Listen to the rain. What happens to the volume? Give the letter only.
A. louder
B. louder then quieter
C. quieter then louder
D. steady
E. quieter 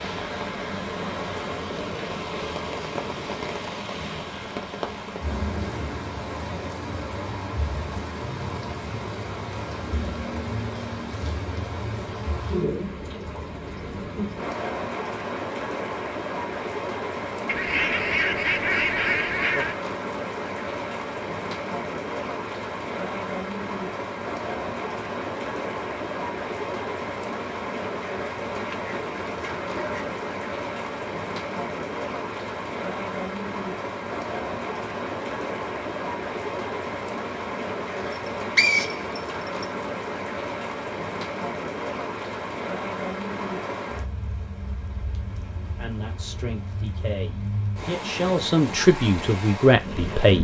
D.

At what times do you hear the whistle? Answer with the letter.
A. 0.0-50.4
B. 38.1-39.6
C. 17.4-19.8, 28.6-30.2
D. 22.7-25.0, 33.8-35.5
B.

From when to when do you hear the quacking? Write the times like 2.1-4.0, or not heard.
17.4-19.8, 28.6-30.2.